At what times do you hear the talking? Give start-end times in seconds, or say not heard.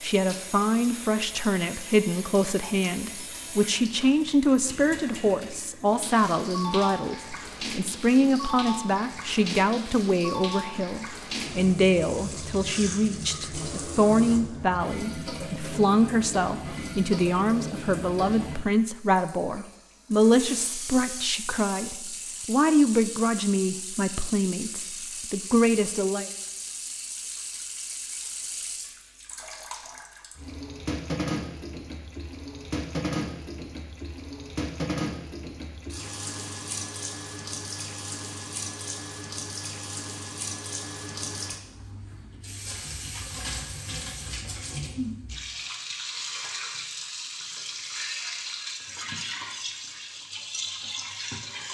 0.0-26.3.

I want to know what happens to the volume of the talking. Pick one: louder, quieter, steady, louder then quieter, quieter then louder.
steady.